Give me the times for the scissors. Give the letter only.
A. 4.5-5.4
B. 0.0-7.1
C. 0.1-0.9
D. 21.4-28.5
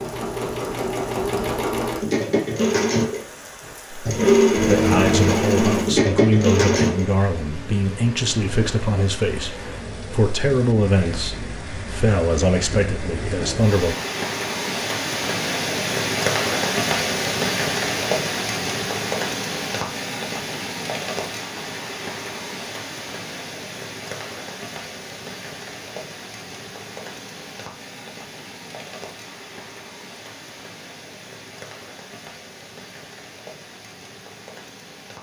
A.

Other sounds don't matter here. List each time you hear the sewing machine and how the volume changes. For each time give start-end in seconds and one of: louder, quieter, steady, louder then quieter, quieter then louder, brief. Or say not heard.
0.0-7.1 louder.